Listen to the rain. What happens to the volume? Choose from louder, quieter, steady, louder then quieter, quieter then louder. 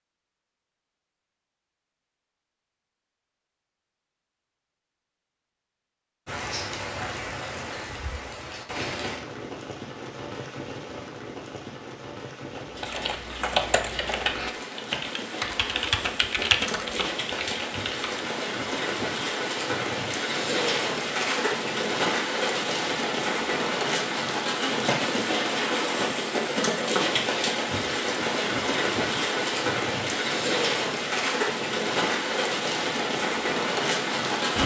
louder.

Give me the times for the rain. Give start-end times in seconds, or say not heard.
6.2-34.6.